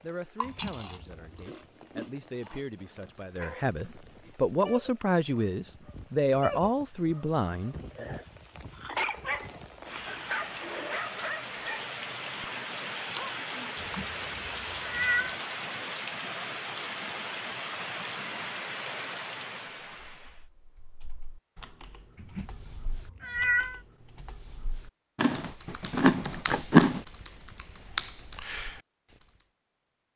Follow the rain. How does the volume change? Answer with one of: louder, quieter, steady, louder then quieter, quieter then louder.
louder.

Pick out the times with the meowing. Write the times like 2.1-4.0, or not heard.
0.4-1.5, 13.8-15.4, 22.1-23.8.